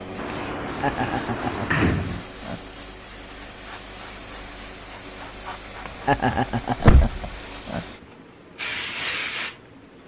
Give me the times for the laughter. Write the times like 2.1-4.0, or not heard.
0.8-2.6, 6.0-7.8.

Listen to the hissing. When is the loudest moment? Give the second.
9 s.